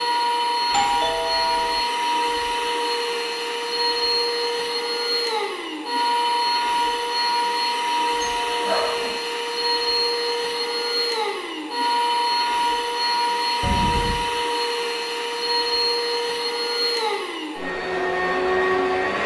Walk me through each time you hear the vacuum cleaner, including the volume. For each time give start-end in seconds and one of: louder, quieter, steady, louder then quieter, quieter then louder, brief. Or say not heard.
0.0-19.2 steady.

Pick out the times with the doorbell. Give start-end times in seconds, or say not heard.
0.7-1.9, 8.2-9.2, 13.6-14.2.